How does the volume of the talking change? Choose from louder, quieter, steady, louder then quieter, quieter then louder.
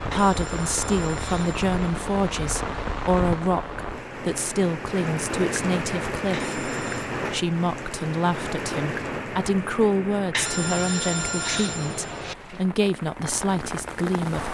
steady.